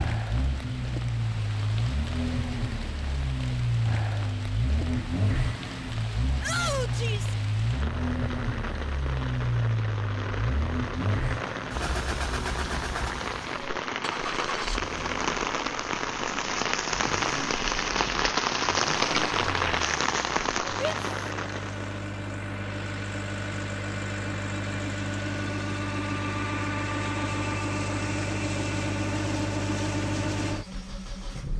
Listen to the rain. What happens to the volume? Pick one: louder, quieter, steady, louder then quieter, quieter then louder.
louder.